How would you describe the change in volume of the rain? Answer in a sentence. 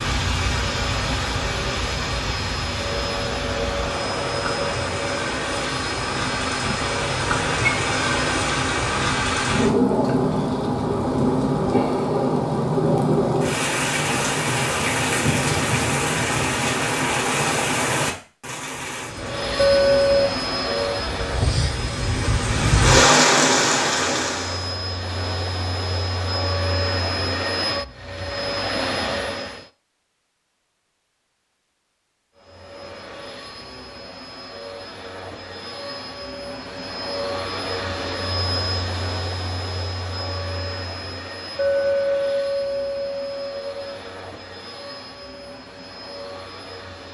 The volume of the rain goes up.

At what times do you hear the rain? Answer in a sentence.
You can hear the rain from 0.0 to 24.8 s.